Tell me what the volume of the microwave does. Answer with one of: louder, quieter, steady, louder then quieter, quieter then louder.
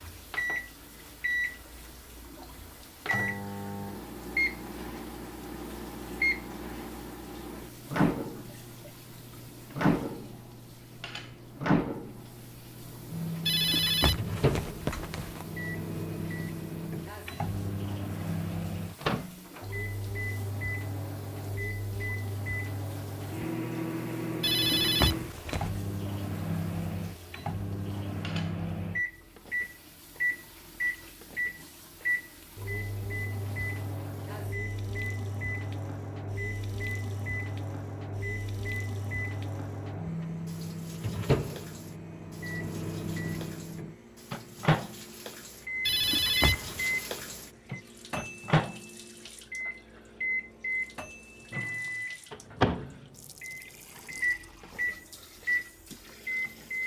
steady.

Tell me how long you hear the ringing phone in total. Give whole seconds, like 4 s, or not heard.
4 s.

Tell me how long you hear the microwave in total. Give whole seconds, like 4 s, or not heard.
57 s.